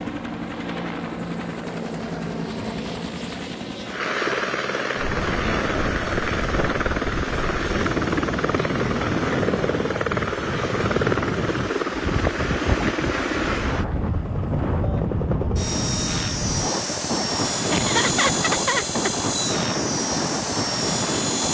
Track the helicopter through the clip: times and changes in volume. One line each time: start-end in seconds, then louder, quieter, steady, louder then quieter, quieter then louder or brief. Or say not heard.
0.0-21.4 steady.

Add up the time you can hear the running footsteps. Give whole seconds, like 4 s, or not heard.
not heard.